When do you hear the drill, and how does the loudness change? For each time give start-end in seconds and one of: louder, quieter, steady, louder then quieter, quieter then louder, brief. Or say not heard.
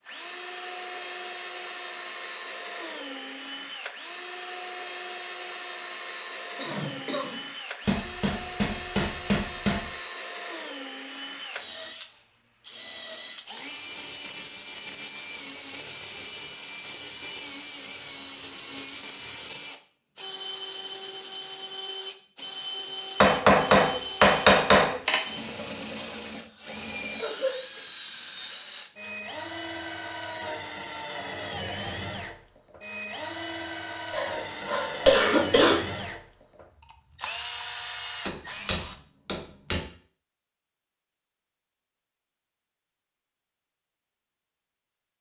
0.0-39.0 steady.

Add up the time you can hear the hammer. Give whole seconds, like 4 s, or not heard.
6 s.